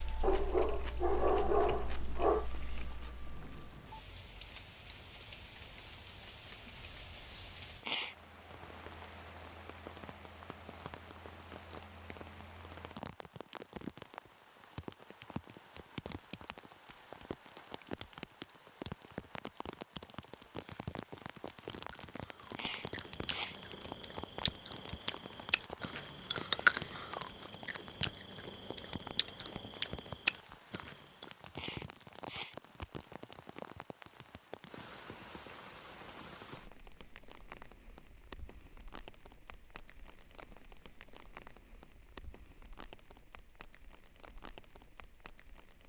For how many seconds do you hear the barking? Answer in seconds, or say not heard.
2 s.